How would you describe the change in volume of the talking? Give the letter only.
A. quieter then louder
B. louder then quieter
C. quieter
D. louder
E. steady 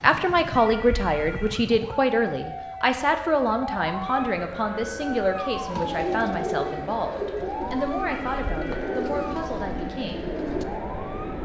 C.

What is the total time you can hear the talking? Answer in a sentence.
You can hear the talking for 10 seconds altogether.